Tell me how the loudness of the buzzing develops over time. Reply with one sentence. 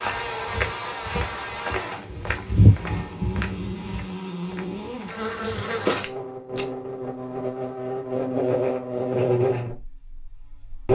The volume of the buzzing goes up.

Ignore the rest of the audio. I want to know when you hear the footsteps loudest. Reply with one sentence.
The loudest moment of the footsteps is at 3 seconds.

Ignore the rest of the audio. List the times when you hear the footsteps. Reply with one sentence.
You can hear the footsteps from 0.0 to 6.7 s.